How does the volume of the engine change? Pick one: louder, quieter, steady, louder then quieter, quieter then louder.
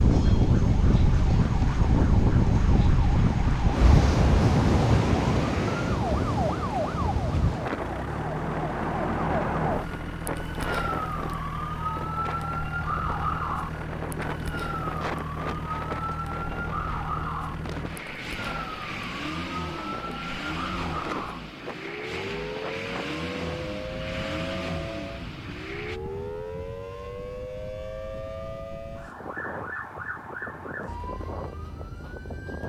steady.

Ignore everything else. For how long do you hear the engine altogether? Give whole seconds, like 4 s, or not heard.
18 s.